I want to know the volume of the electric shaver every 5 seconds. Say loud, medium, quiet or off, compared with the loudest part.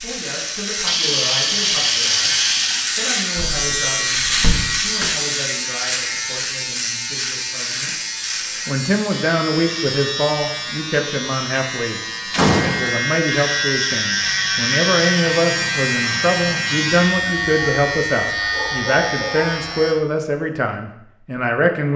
loud, loud, loud, loud, off.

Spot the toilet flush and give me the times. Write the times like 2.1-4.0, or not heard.
0.8-2.9.